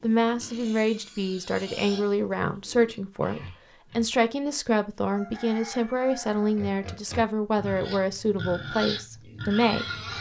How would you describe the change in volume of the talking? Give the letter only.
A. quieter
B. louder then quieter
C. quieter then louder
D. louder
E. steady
E.